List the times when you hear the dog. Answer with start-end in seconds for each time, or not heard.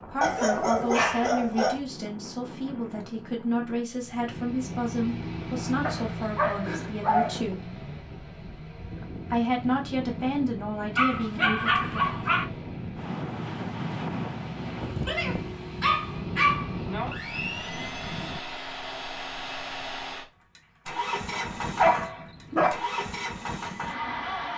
0.2-1.8, 5.8-7.4, 10.9-12.4, 15.1-16.8, 21.3-22.8.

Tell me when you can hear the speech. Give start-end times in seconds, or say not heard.
0.1-7.7, 9.3-12.2.